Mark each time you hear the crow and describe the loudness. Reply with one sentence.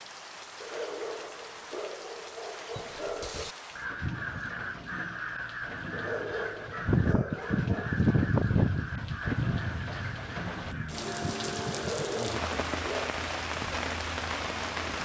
You can hear the crow from 2.8 to 12.1 s, getting louder then quieter.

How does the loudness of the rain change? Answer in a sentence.
The loudness of the rain goes up.